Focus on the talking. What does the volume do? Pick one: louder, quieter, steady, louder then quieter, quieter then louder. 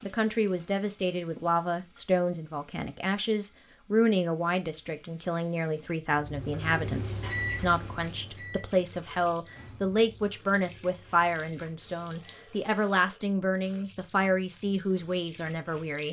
steady.